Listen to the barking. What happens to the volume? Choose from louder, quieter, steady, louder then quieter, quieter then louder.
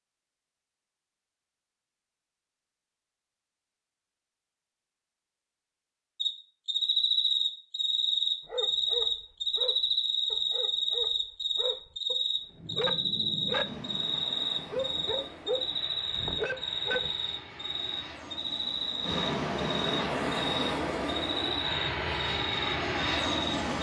louder.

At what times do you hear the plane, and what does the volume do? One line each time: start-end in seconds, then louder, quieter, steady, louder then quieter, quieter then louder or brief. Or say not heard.
13.6-23.7 louder.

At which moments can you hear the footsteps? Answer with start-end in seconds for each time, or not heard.
not heard.